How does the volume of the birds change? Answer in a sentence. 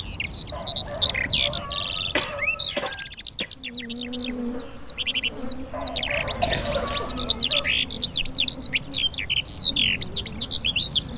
The loudness of the birds goes down, then up.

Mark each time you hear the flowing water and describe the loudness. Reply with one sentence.
The flowing water can't be heard in this clip.